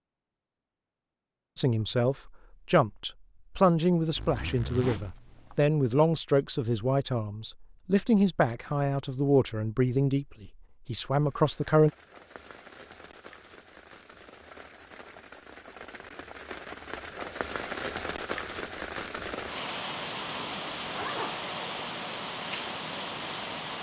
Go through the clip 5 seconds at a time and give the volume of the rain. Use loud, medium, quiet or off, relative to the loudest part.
off, off, quiet, loud, loud.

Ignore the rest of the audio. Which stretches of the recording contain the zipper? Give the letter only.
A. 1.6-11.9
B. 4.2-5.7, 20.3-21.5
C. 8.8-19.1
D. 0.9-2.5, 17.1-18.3
B.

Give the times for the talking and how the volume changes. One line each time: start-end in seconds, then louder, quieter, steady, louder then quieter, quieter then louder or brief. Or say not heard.
1.6-11.9 steady.